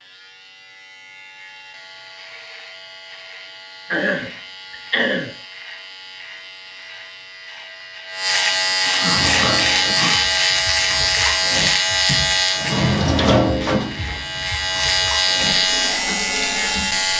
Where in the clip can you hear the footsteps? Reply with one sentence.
You can't hear the footsteps here.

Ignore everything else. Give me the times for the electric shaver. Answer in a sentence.
The electric shaver can be heard from 0.0 to 17.1 s.